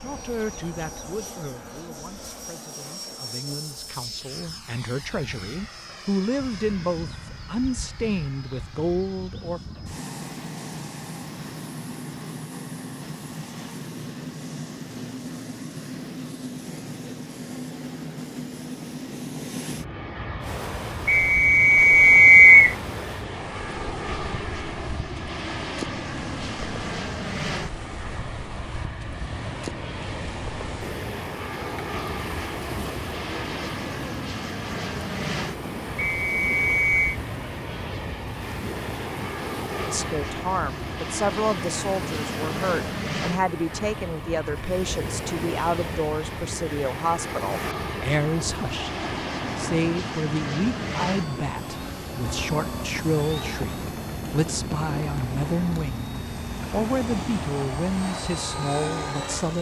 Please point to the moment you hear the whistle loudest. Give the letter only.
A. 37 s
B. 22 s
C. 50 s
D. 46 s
B.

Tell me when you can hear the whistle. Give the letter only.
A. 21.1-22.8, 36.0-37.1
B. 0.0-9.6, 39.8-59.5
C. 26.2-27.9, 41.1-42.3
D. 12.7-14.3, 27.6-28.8
A.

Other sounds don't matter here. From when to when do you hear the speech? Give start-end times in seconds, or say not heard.
0.0-9.6, 39.8-59.5.